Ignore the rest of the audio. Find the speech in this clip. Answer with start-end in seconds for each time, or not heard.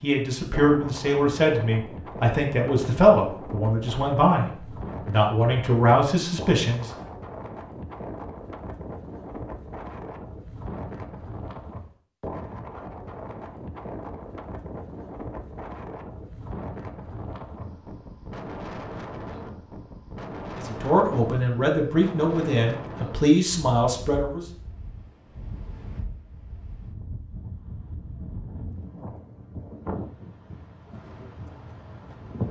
0.0-6.9, 20.6-24.4.